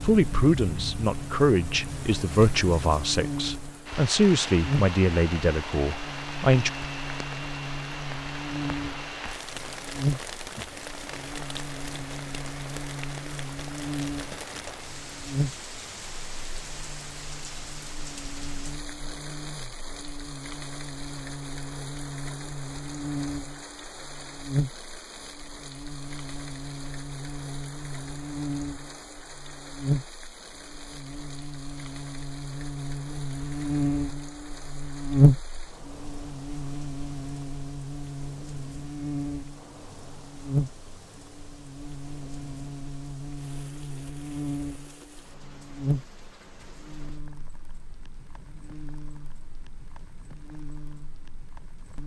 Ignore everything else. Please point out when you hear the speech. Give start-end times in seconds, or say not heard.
0.0-6.7.